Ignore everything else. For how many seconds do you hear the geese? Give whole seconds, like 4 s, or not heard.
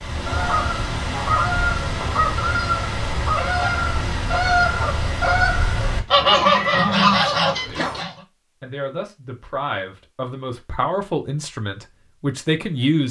8 s.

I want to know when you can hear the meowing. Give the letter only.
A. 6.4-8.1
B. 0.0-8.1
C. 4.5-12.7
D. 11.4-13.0
A.